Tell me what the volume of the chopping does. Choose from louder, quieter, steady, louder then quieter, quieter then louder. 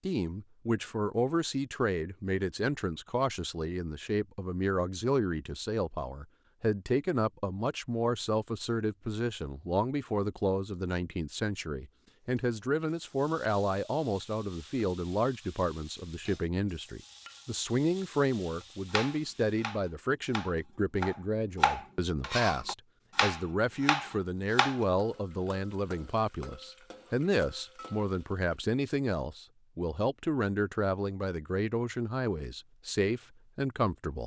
louder.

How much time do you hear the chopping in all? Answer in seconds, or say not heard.
6 s.